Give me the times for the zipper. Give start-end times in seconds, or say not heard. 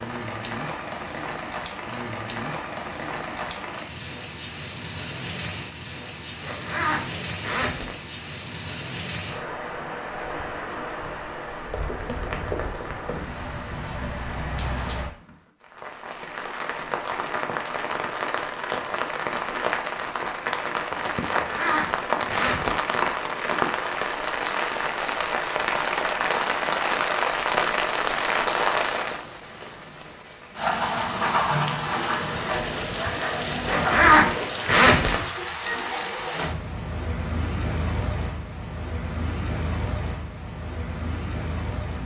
6.4-8.0, 21.3-22.8, 33.6-35.1.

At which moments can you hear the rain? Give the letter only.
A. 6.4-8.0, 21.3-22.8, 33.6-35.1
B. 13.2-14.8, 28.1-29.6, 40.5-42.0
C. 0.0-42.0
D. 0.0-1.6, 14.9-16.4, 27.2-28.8
C.